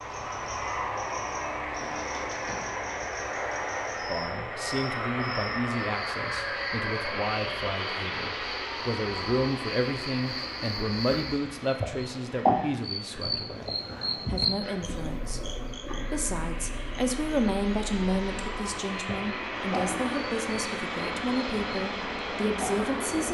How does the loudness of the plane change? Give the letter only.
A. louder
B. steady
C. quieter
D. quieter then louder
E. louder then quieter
D.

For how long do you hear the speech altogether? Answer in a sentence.
The speech can be heard for 19 seconds in total.